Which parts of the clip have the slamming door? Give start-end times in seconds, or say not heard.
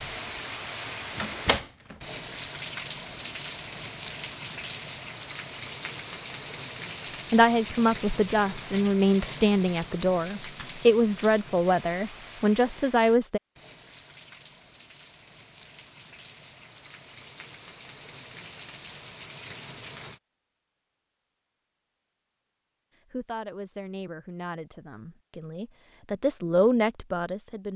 1.1-1.9.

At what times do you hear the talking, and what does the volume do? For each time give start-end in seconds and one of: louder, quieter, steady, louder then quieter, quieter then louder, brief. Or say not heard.
7.3-13.4 steady
23.1-27.7 louder.